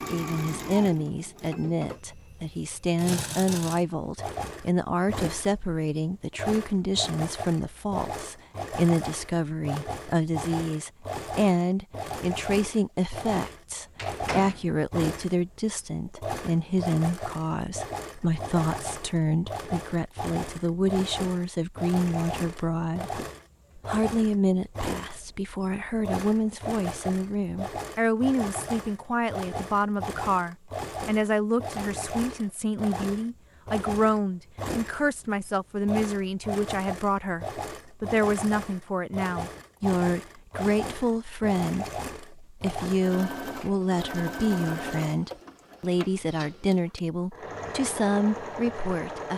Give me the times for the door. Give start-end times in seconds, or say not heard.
13.9-14.7.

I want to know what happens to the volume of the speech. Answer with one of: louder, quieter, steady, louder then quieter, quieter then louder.
steady.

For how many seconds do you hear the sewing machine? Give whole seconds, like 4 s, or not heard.
49 s.